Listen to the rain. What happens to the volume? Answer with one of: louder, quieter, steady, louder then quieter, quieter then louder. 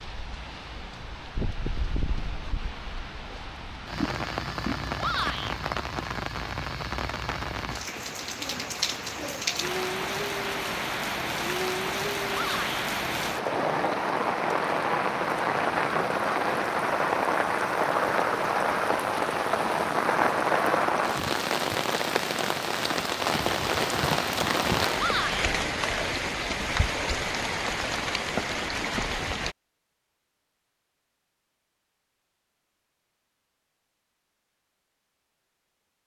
louder.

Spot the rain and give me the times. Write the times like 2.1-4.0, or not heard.
0.0-29.6.